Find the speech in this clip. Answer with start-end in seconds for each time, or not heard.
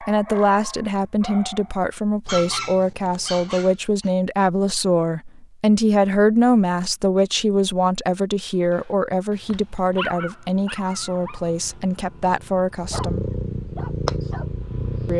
0.0-13.2.